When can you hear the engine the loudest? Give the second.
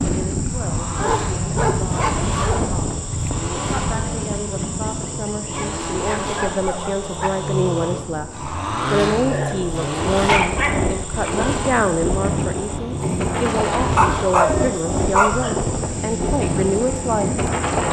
9 s.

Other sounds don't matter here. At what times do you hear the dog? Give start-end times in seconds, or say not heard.
0.9-2.6, 5.5-7.3, 9.2-11.5, 13.9-15.6.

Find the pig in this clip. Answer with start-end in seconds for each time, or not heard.
not heard.